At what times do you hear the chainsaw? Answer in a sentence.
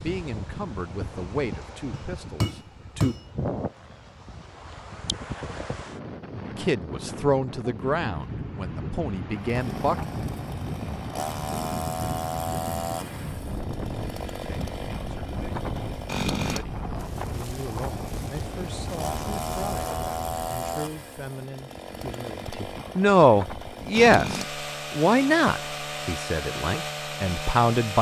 The chainsaw can be heard from 9.3 to 27.9 s.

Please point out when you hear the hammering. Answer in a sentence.
You can hear the hammering from 1.9 to 3.2 s.